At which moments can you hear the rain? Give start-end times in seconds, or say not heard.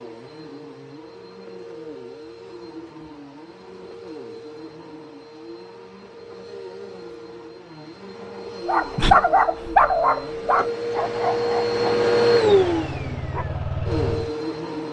not heard.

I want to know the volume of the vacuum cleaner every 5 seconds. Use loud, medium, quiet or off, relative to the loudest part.
quiet, quiet, loud.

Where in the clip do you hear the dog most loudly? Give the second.
9 s.